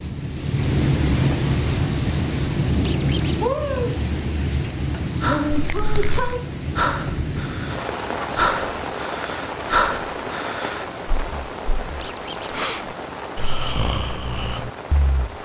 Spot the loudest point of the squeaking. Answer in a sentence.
The loudest moment of the squeaking is at 3 seconds.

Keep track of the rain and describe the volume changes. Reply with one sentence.
The loudness of the rain goes down.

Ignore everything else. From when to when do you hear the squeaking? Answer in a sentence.
The squeaking can be heard from 2.9 to 3.4 s, from 5.5 to 6.3 s and from 12.0 to 12.6 s.